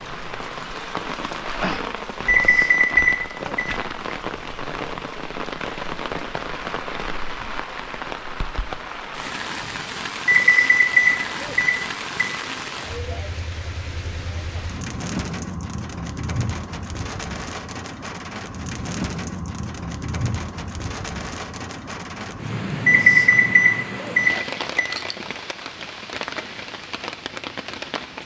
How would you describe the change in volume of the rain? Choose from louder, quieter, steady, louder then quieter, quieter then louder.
steady.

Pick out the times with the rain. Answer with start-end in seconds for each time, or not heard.
0.0-28.2.